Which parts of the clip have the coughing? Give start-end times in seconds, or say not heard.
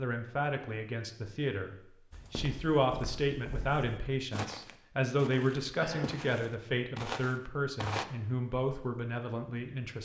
5.8-6.4.